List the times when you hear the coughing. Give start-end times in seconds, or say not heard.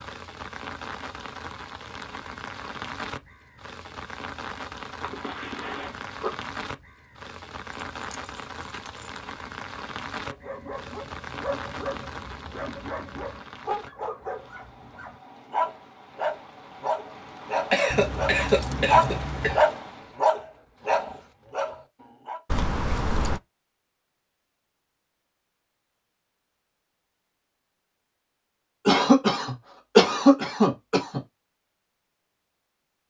5.0-6.3, 17.7-19.6, 28.9-31.2.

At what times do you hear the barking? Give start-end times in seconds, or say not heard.
10.2-22.4.